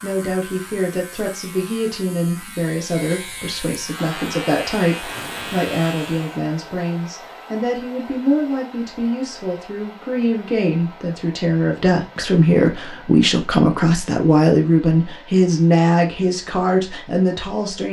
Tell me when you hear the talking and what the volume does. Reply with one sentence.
You can hear the talking from 0.0 to 17.8 s, getting louder.